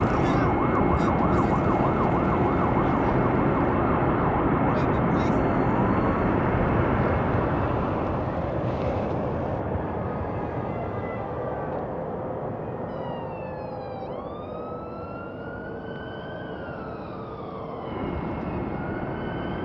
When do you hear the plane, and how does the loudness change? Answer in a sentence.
You can hear the plane from 0.0 to 19.5 s, getting quieter.